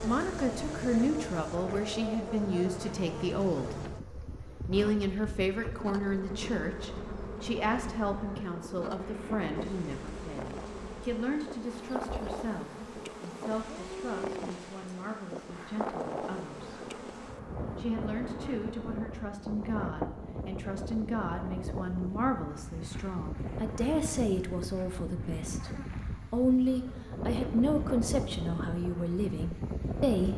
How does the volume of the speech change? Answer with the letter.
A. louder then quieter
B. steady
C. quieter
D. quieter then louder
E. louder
D.